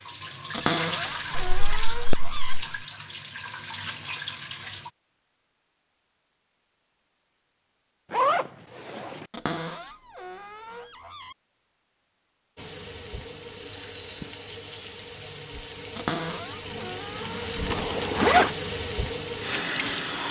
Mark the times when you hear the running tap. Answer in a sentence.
The running tap can be heard from 0.0 to 4.9 s and from 12.6 to 20.2 s.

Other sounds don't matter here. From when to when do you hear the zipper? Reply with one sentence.
The zipper can be heard from 1.3 to 2.6 s, from 8.1 to 9.2 s and from 17.7 to 18.5 s.